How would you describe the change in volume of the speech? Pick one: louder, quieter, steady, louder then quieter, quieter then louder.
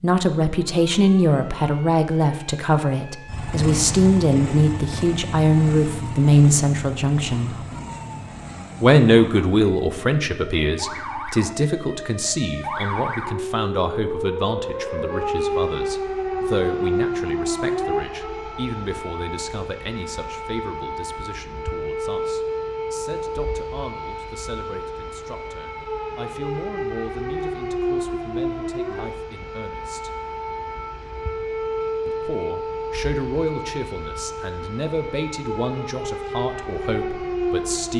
quieter then louder.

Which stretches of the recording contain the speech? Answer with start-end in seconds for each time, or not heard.
0.0-7.5, 8.8-30.1, 32.0-37.9.